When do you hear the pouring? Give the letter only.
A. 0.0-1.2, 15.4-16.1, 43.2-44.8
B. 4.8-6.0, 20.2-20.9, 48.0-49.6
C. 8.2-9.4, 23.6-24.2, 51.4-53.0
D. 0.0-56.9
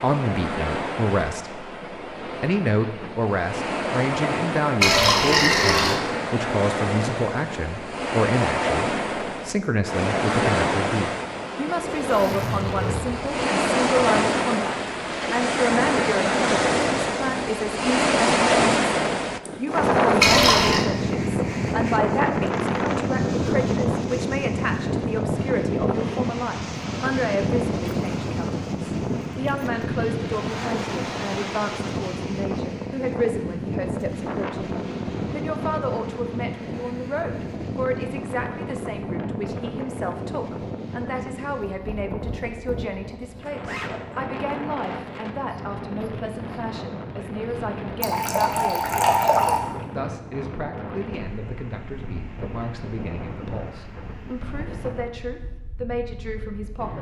B.